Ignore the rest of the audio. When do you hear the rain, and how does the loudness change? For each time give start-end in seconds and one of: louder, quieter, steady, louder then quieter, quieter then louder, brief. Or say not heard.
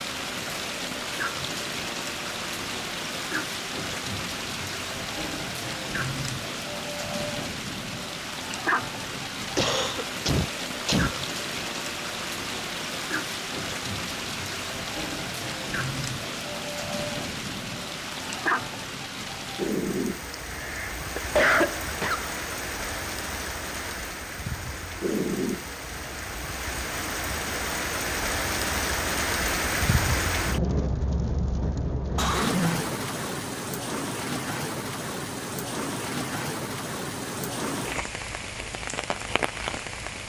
0.0-40.2 steady.